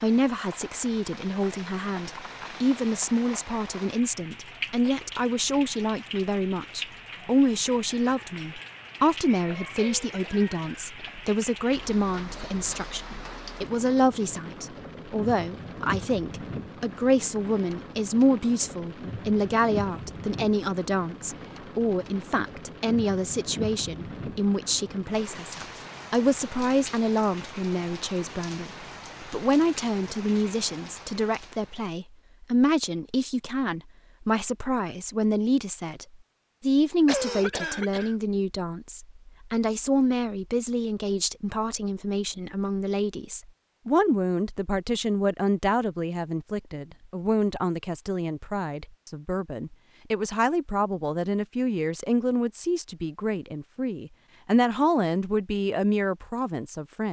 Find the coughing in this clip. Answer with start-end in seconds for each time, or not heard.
9.8-11.2, 37.0-38.1.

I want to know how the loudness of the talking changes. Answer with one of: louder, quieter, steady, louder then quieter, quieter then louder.
steady.